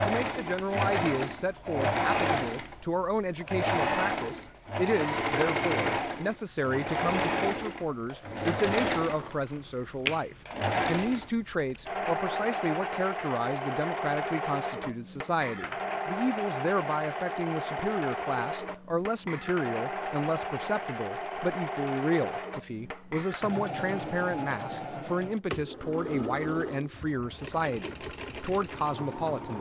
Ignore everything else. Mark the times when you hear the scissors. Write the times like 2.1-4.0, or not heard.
not heard.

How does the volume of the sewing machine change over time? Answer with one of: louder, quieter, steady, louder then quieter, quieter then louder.
quieter.